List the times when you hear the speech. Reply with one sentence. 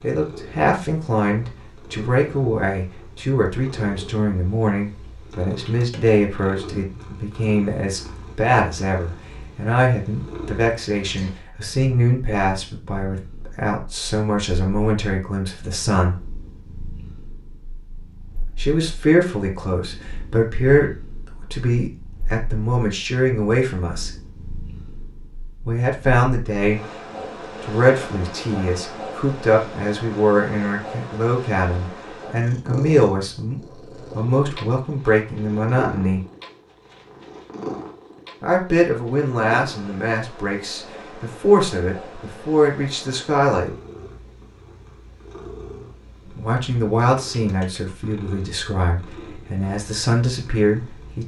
You can hear the speech from 0.0 to 16.2 s, from 18.6 to 24.1 s, from 25.6 to 26.8 s, from 27.6 to 36.2 s, from 38.4 to 43.7 s and from 46.2 to 51.2 s.